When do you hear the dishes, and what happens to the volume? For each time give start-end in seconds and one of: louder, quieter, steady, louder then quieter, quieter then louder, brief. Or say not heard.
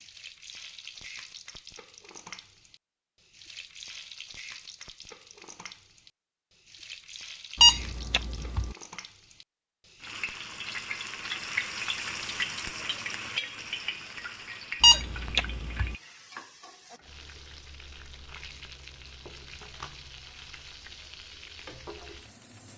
not heard.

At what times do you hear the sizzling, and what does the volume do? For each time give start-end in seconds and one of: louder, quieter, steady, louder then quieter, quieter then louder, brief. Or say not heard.
0.0-22.7 louder then quieter.